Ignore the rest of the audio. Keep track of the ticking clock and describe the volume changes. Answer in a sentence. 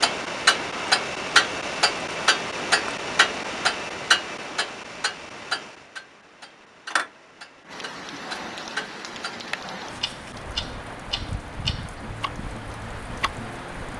The volume of the ticking clock goes down.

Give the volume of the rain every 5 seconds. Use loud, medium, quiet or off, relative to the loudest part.
off, loud, loud.